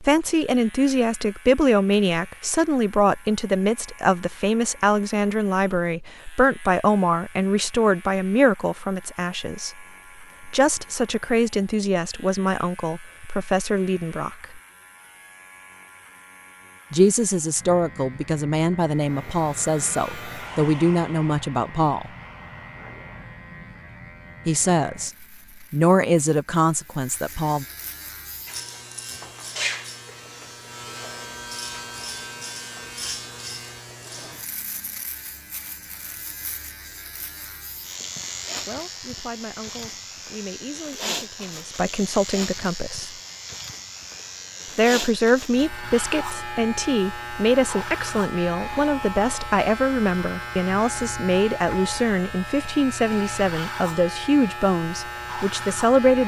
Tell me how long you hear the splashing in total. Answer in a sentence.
The splashing can't be heard in this clip.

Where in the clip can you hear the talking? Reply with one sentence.
The talking can be heard from 0.0 to 9.8 s, from 10.4 to 14.6 s, from 16.9 to 22.1 s, from 24.4 to 27.6 s, from 38.6 to 43.1 s and from 44.8 to 56.2 s.